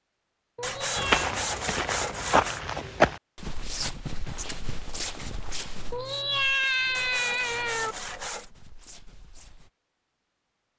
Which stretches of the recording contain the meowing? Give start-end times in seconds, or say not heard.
0.6-1.3, 5.9-8.0.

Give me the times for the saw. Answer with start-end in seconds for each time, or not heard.
0.6-2.6, 6.9-8.5.